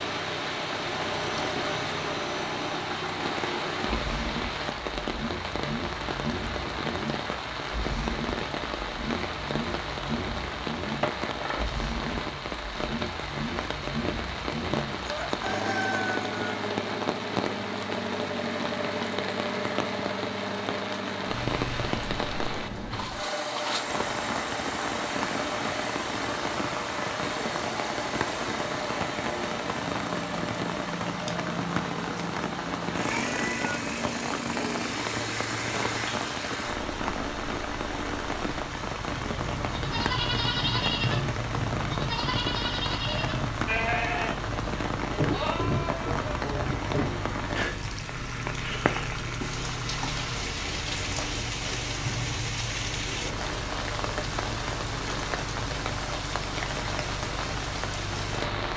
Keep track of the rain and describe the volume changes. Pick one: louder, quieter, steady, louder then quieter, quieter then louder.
steady.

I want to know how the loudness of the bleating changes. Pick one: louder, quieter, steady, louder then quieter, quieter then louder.
steady.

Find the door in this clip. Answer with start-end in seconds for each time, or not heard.
not heard.